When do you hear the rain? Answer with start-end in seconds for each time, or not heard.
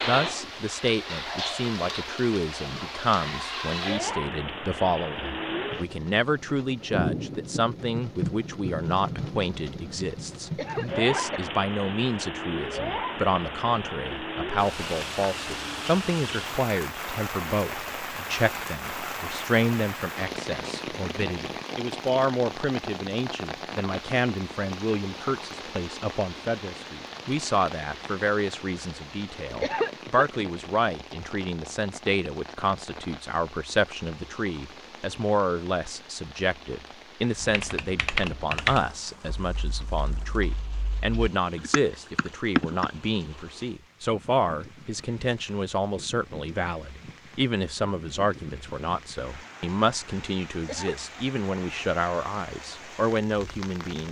0.0-54.0.